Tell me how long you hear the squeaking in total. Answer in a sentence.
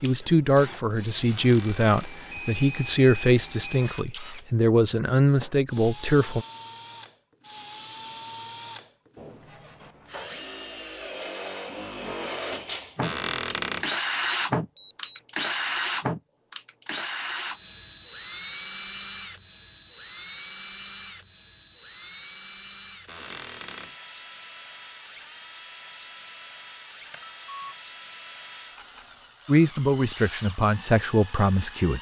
You can hear the squeaking for 3 seconds altogether.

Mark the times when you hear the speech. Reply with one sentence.
The speech can be heard from 0.0 to 6.5 s and from 29.4 to 31.9 s.